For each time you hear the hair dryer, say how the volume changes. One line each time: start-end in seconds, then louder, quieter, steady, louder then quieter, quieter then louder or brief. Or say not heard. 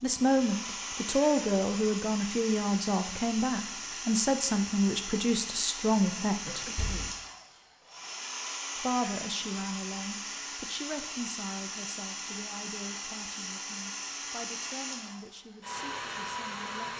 0.0-16.9 steady.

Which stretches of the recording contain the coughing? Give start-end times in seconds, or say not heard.
6.4-7.2.